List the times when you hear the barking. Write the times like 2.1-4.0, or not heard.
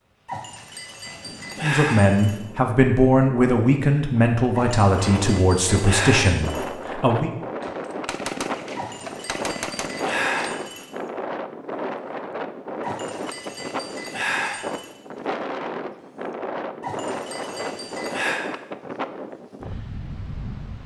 0.2-2.4, 4.5-6.7, 8.8-10.9, 12.8-14.9, 16.8-18.4.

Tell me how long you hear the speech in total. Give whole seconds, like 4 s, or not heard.
6 s.